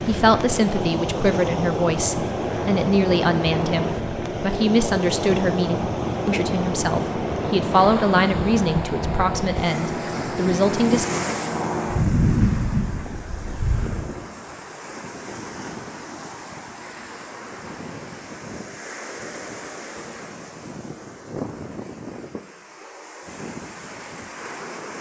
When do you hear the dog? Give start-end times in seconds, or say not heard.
not heard.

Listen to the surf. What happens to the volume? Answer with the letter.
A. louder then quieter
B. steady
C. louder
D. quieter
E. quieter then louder
D.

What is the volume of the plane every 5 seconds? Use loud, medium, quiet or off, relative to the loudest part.
medium, medium, loud, off, off.